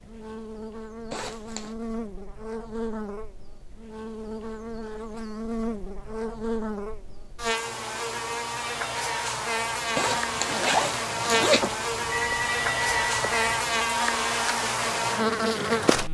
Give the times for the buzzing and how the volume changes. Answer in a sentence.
You can hear the buzzing from 0.0 to 16.0 s, getting louder.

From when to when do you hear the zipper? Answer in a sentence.
You can hear the zipper from 1.1 to 1.8 s and from 9.9 to 11.8 s.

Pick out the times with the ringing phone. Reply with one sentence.
The ringing phone can be heard from 11.6 to 13.3 s.